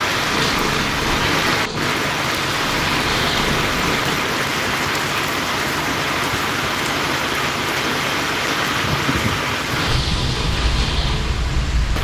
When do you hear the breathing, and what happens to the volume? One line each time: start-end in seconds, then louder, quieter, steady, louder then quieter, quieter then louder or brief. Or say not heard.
not heard.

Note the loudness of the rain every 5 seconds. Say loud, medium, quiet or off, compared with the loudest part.
loud, loud, medium.